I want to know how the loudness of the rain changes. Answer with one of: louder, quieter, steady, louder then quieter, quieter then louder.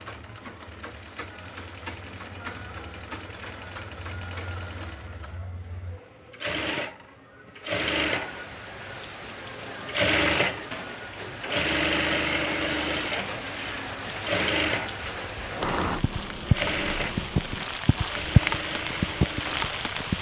louder.